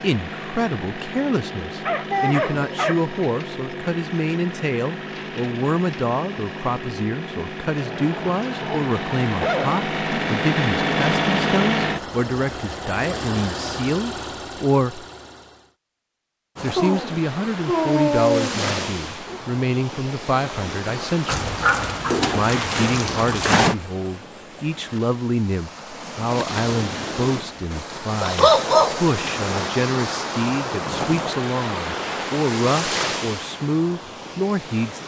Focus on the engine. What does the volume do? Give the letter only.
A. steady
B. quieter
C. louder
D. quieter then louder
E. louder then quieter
E.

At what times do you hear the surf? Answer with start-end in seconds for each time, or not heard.
16.6-35.0.